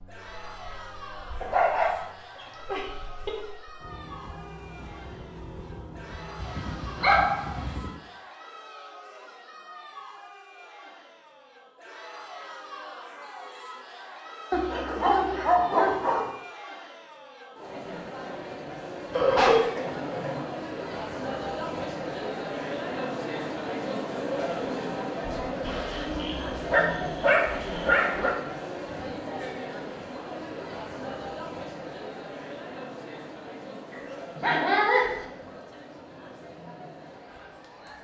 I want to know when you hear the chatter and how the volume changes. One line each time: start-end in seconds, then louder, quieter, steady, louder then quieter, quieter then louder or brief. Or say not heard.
0.0-37.9 louder then quieter.